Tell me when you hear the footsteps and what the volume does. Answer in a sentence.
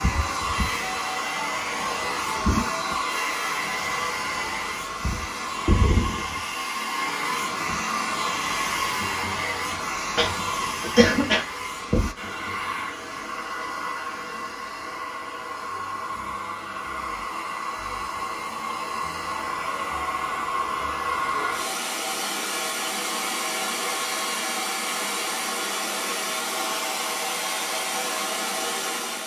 You can't hear the footsteps here.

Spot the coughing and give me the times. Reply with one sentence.
You can hear the coughing from 10.2 to 11.4 s.